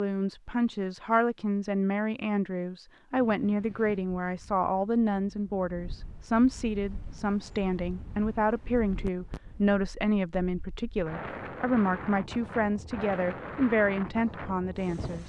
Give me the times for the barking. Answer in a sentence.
The barking can't be heard in this clip.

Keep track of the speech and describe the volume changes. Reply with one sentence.
The volume of the speech stays about the same.